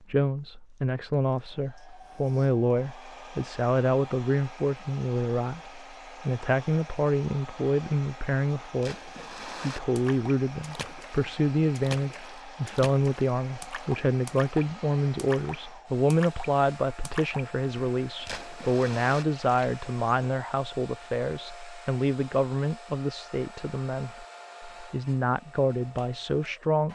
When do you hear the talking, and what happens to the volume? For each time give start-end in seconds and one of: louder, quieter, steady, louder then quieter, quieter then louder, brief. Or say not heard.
0.1-26.8 steady.